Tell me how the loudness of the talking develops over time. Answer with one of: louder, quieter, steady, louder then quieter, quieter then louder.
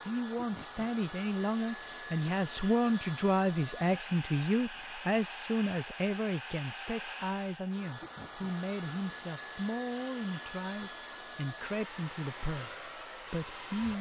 quieter.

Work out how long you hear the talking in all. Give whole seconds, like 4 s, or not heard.
14 s.